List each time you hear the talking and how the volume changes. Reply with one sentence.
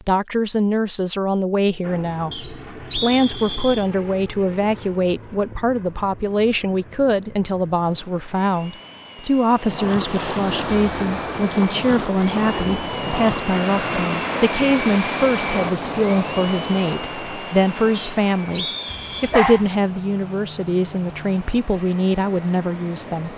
The talking can be heard from 0.0 to 23.3 s, at a steady volume.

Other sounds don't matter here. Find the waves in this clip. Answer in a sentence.
The waves can be heard from 9.4 to 23.3 s.